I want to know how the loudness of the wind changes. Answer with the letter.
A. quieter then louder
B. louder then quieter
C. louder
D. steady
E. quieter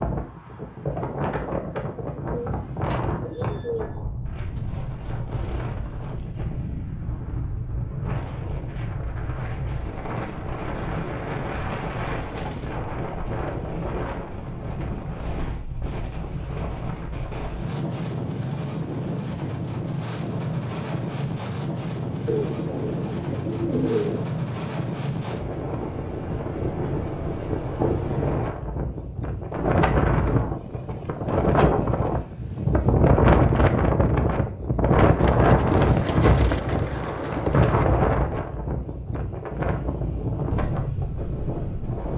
C.